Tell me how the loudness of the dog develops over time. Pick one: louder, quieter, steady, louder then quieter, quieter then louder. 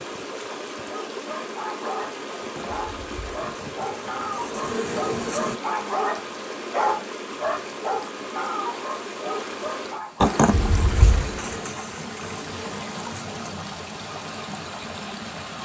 louder then quieter.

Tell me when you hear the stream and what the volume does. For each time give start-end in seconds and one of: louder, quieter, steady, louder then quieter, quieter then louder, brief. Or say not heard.
0.0-15.6 steady.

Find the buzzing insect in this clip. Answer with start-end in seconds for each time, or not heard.
2.4-5.5, 10.2-13.6.